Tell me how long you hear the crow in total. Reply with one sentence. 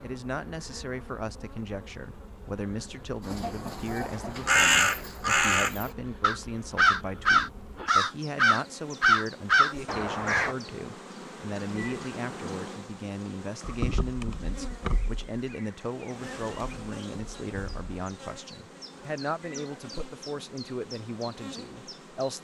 You can hear the crow for 7 seconds altogether.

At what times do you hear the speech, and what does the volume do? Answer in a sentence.
The speech can be heard from 0.0 to 22.4 s, at a steady volume.